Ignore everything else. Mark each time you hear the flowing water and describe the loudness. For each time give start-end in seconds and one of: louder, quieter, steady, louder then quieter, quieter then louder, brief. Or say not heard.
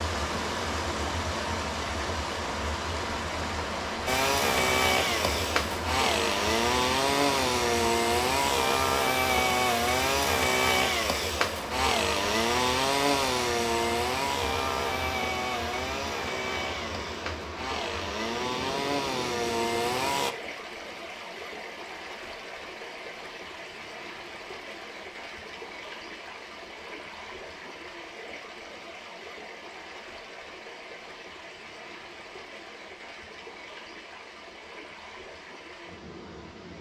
0.0-36.7 quieter.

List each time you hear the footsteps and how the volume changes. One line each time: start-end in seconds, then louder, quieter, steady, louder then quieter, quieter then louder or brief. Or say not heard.
not heard.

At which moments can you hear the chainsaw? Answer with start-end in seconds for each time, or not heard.
4.0-20.4.